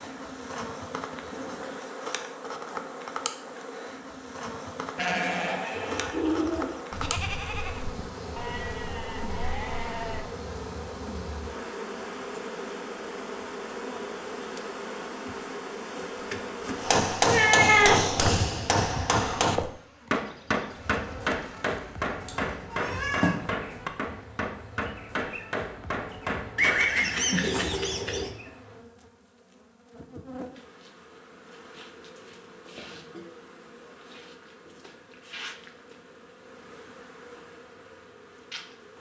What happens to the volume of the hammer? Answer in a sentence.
The volume of the hammer goes down.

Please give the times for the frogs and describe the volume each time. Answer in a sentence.
The frogs can't be heard in this clip.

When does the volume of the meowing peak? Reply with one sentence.
The loudest moment of the meowing is at 18 seconds.